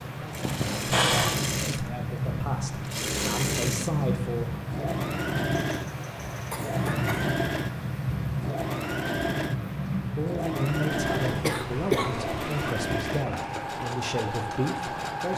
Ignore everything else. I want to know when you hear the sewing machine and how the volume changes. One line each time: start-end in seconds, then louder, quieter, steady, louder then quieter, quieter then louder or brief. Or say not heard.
0.0-15.3 steady.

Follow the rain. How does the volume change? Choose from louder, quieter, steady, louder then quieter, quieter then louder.
quieter.